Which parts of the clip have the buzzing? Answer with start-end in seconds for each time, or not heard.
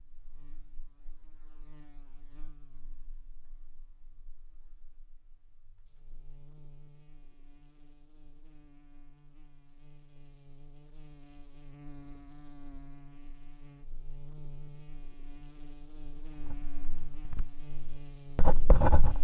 0.0-19.1.